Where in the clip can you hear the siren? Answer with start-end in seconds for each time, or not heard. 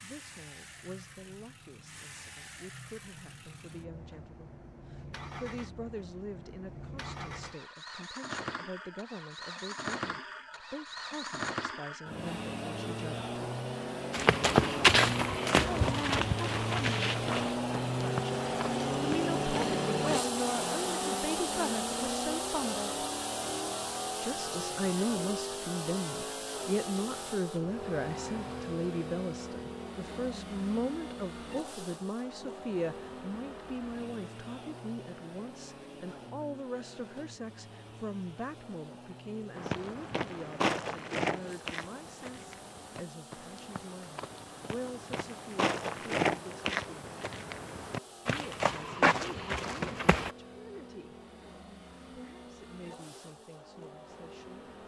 not heard.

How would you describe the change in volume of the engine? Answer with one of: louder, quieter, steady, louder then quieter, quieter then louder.
louder then quieter.